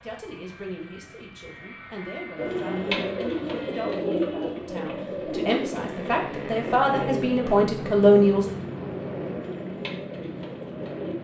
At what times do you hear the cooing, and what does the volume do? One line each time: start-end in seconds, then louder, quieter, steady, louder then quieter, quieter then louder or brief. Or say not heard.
2.4-11.1 quieter.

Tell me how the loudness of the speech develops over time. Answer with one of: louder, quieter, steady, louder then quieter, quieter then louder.
louder.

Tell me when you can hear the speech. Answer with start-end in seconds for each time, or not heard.
0.0-8.4.